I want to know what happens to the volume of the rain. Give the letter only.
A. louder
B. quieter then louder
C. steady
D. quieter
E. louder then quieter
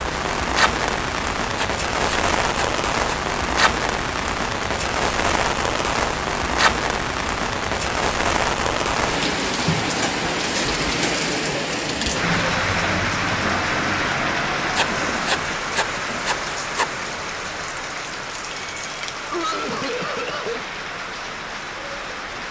D.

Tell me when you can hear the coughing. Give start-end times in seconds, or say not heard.
19.3-20.6.